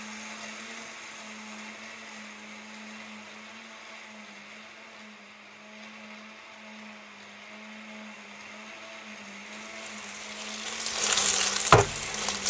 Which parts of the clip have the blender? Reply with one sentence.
You can hear the blender from 0.0 to 12.4 s.